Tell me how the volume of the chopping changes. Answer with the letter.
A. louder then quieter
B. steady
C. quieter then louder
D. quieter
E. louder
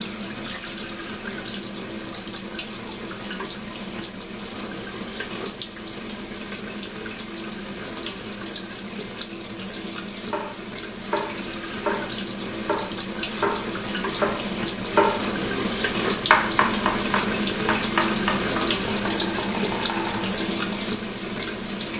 A.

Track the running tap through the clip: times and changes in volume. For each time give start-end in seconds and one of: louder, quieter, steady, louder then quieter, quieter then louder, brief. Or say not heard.
0.0-21.9 louder.